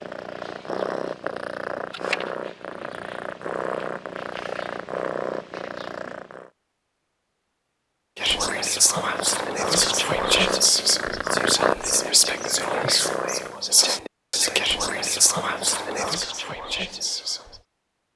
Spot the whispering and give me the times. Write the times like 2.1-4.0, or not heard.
8.2-17.6.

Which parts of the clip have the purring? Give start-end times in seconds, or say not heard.
0.0-6.5, 8.8-13.6.